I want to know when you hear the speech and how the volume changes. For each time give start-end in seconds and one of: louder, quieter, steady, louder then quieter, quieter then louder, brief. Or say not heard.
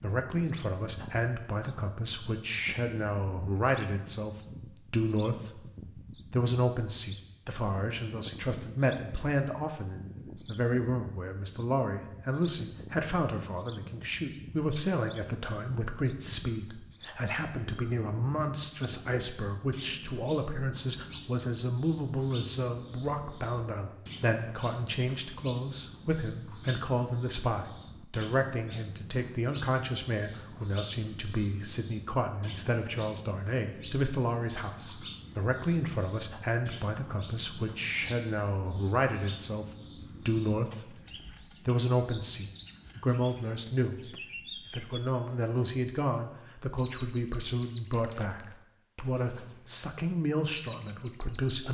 0.0-51.7 steady.